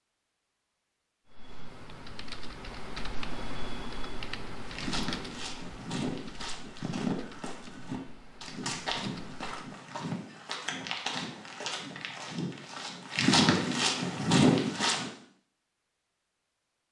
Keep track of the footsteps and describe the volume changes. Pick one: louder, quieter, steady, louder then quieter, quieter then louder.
louder.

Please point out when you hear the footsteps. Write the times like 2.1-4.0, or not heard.
4.6-15.1.